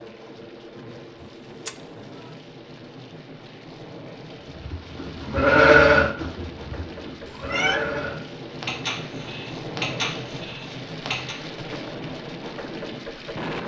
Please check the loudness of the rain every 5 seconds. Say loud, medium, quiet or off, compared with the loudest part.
medium, loud, loud.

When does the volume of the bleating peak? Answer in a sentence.
The loudest moment of the bleating is at 6 seconds.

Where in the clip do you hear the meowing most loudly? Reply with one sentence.
The loudest moment of the meowing is at 8 seconds.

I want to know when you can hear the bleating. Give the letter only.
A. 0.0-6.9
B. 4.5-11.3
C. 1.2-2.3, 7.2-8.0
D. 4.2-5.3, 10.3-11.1
B.